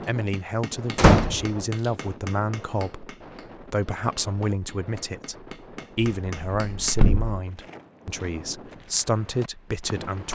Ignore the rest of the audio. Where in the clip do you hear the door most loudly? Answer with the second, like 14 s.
1 s.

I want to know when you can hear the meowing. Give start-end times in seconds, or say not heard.
not heard.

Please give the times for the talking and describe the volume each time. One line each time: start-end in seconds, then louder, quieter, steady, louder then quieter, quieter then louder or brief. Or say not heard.
0.1-10.3 steady.